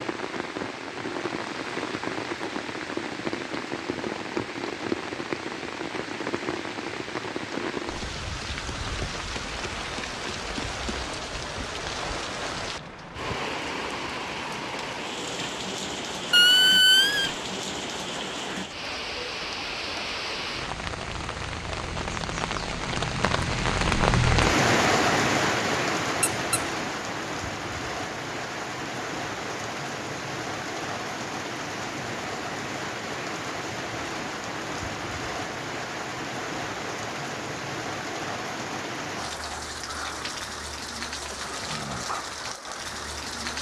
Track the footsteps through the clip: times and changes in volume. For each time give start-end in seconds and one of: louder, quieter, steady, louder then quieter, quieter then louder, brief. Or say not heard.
not heard.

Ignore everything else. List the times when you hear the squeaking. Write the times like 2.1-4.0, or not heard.
16.3-17.3, 26.2-26.6.